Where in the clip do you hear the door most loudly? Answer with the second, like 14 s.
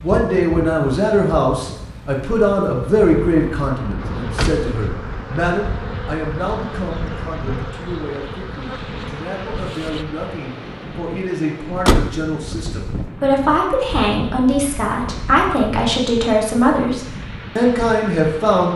12 s.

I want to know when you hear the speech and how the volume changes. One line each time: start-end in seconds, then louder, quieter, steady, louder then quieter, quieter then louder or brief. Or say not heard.
0.0-18.7 quieter then louder.